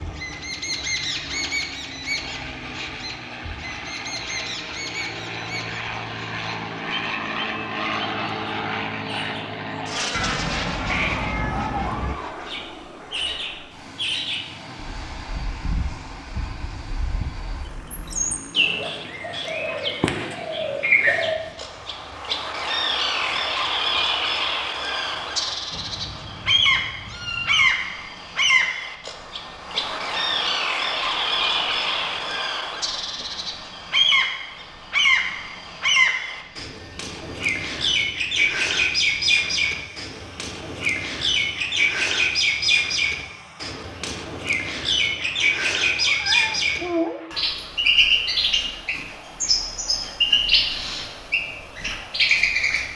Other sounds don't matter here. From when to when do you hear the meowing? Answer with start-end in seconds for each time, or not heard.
10.1-12.2, 25.7-27.8, 46.0-47.2.